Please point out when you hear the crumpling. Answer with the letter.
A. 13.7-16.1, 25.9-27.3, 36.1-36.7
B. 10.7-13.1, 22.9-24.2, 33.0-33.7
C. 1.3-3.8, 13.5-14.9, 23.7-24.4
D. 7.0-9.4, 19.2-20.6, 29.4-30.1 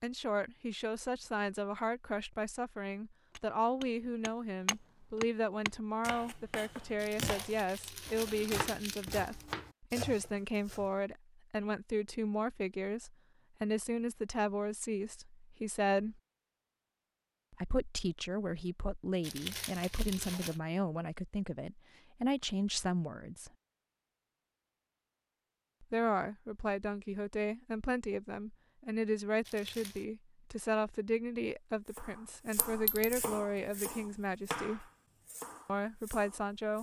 D.